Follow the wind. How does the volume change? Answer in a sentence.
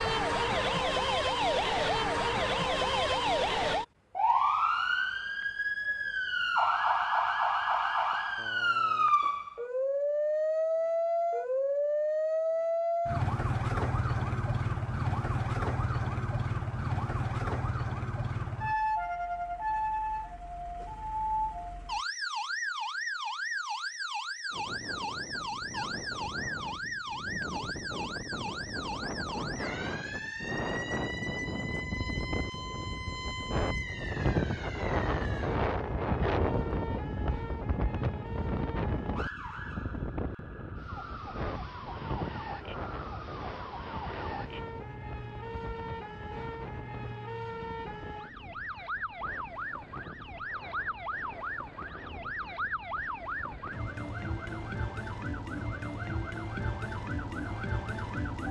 The loudness of the wind goes up, then down.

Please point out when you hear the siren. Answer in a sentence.
You can hear the siren from 0.0 to 58.4 s.